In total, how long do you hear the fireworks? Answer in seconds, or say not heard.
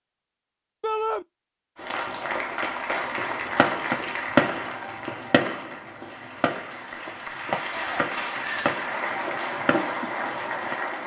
8 s.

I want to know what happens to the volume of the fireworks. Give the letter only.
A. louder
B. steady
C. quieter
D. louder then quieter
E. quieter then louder
C.